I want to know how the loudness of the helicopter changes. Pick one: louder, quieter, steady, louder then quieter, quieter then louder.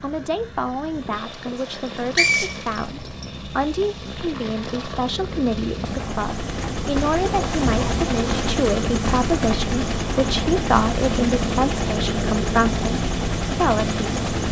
louder.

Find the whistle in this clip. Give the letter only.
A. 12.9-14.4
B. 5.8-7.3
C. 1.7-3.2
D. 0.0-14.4
C.